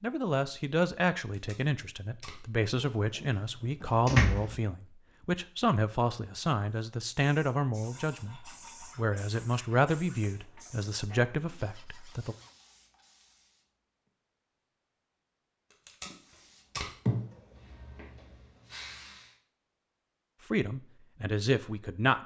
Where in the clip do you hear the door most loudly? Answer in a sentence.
The volume of the door peaks at 4 seconds.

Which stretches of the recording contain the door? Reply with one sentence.
The door can be heard from 2.8 to 4.5 s.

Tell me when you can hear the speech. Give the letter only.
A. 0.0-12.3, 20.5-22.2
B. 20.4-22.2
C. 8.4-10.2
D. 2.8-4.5
A.